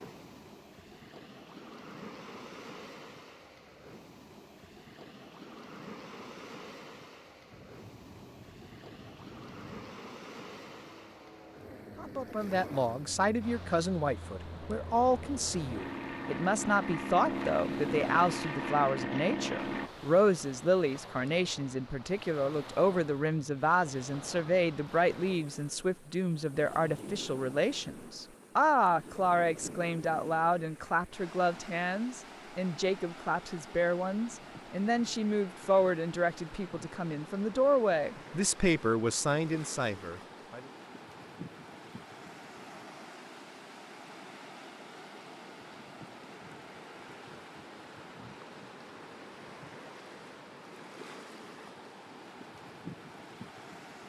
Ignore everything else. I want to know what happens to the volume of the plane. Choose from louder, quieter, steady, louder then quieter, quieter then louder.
louder.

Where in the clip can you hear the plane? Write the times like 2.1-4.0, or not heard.
7.5-19.9.